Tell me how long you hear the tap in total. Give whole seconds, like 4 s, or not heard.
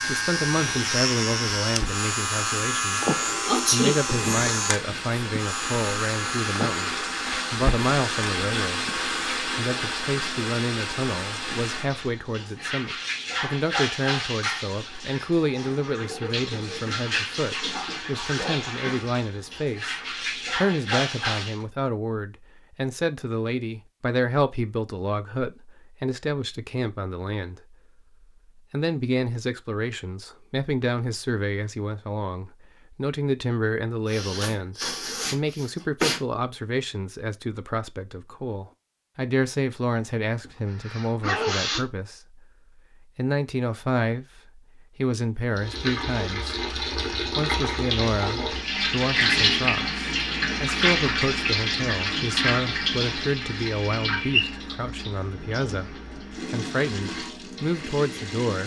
35 s.